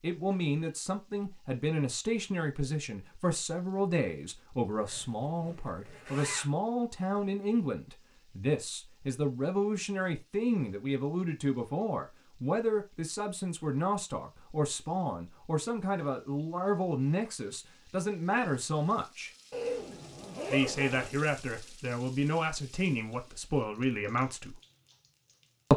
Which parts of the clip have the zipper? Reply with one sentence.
You can hear the zipper from 4.8 to 6.5 s and from 19.5 to 21.1 s.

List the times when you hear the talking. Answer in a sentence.
You can hear the talking from 0.0 to 19.3 s and from 20.5 to 24.6 s.